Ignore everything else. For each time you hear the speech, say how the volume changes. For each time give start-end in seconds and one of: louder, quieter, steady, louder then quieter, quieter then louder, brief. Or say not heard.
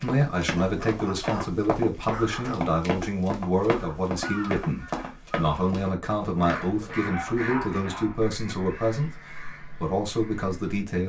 0.0-11.0 steady.